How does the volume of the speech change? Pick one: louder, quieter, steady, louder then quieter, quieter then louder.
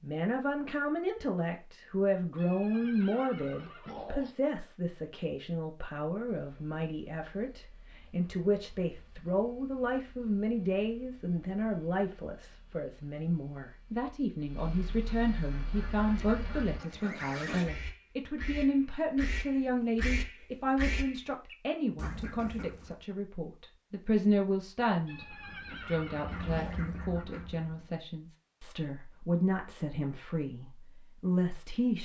steady.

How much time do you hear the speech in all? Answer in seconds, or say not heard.
32 s.